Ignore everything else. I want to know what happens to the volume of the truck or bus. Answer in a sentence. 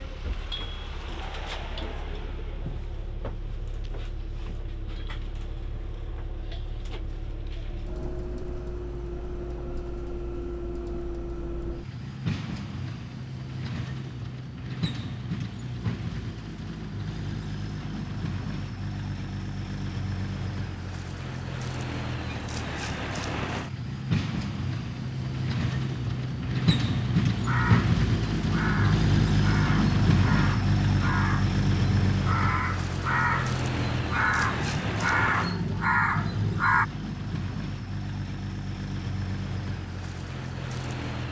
The loudness of the truck or bus goes up, then down.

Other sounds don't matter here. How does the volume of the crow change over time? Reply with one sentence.
The volume of the crow goes up.